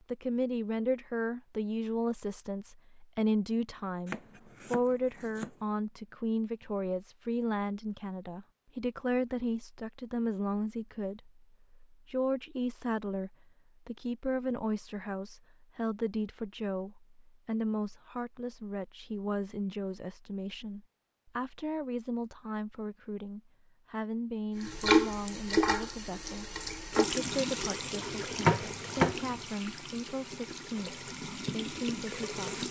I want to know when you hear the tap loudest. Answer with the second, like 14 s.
25 s.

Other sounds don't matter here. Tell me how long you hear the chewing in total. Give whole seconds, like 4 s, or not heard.
not heard.